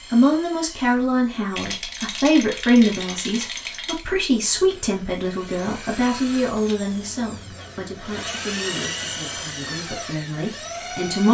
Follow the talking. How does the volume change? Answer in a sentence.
The loudness of the talking goes down.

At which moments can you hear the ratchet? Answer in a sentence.
The ratchet can't be heard in this clip.